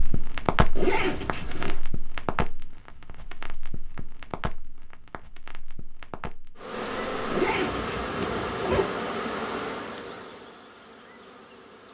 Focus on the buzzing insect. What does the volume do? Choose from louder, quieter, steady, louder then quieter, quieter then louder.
quieter.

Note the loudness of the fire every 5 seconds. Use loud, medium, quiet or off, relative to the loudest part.
loud, medium, off.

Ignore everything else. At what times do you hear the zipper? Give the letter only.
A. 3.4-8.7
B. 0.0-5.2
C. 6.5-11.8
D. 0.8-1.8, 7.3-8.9
D.